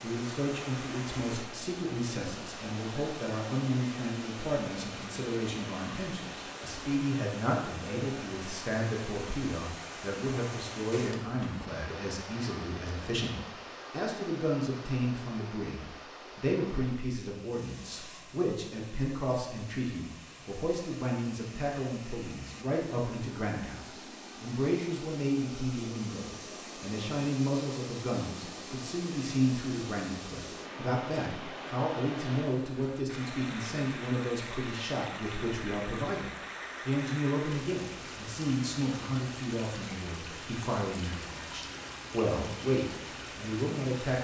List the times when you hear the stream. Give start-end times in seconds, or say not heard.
0.0-44.1.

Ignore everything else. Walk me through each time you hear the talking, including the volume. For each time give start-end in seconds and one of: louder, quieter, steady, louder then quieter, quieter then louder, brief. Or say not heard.
0.0-44.1 steady.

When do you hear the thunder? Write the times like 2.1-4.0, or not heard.
not heard.